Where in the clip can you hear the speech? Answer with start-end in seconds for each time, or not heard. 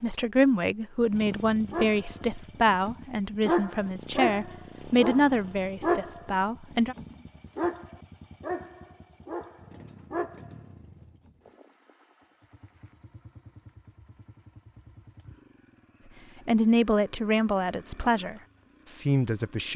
0.0-7.0, 16.4-19.7.